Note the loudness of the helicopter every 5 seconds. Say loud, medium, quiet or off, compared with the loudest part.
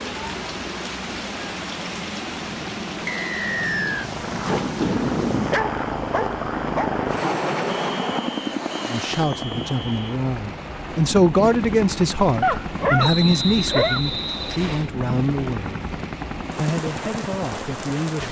medium, loud, medium, medium.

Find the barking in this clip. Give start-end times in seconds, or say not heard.
4.0-6.9, 12.4-14.1.